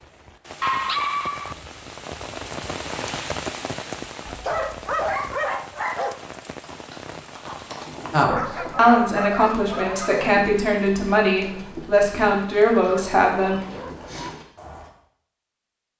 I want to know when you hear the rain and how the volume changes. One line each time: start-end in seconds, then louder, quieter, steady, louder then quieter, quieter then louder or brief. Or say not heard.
0.0-8.2 louder then quieter.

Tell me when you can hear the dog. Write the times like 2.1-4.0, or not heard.
0.6-1.6, 4.2-6.2, 8.3-10.3, 12.8-14.3.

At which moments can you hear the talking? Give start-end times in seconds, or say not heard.
8.1-13.6.